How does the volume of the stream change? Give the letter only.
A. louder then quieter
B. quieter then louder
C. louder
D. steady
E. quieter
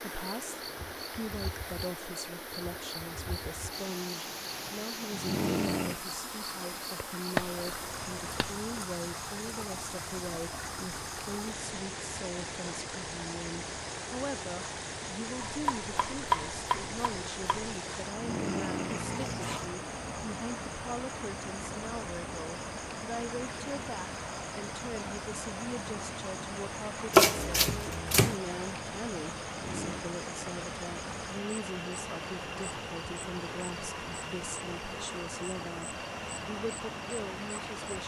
D.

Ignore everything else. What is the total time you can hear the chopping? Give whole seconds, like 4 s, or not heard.
5 s.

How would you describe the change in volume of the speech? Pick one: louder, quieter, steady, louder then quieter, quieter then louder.
steady.